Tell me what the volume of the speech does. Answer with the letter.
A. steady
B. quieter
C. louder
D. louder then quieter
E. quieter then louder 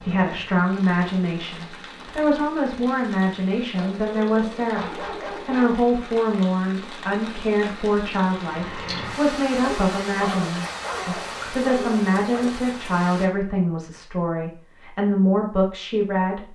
A.